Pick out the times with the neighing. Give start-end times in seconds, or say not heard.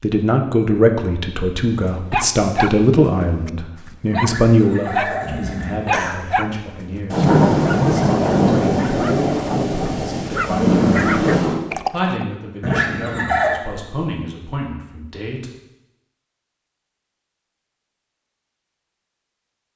4.2-6.2, 12.6-13.6.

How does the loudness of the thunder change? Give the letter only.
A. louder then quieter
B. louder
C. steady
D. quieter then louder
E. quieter
D.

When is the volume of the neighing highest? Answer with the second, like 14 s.
13 s.